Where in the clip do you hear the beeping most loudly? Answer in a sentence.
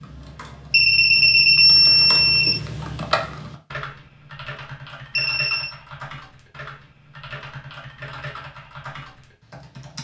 The volume of the beeping peaks at 2 seconds.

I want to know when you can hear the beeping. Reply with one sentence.
The beeping can be heard from 0.7 to 2.6 s and from 5.2 to 5.8 s.